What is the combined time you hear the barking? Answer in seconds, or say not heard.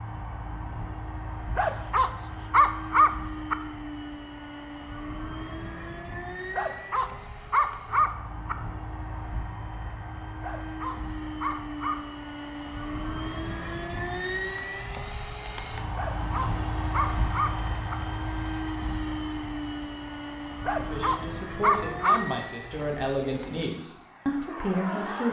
9 s.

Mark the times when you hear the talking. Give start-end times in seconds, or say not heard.
20.8-25.2.